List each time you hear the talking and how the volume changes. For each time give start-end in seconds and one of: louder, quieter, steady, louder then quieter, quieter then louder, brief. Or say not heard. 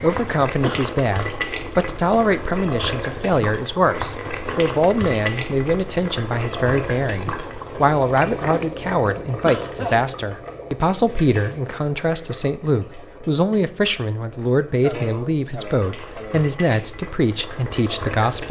0.0-18.4 steady.